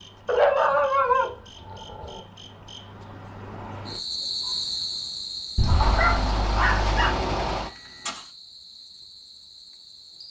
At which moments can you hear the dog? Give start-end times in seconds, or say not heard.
0.2-2.2, 5.5-7.2.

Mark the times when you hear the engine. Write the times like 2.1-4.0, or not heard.
5.6-8.3.